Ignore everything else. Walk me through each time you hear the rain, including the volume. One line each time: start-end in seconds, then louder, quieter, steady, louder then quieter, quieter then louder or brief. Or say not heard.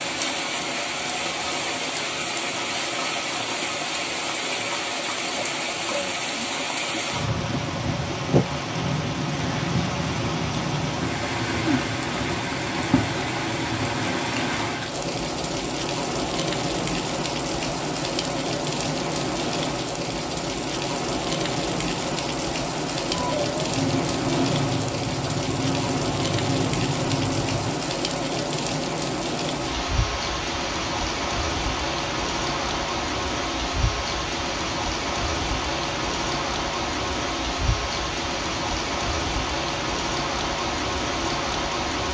0.0-42.0 steady.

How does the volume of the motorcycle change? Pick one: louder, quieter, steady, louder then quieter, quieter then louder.
steady.